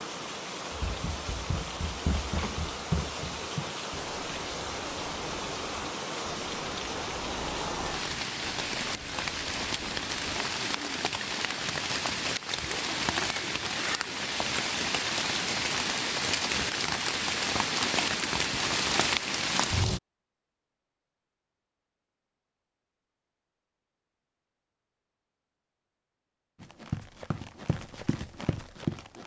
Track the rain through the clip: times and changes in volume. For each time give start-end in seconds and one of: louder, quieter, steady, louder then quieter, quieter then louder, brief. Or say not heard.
0.0-20.0 louder.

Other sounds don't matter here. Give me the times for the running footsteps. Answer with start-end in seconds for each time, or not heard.
0.7-11.0, 26.6-29.2.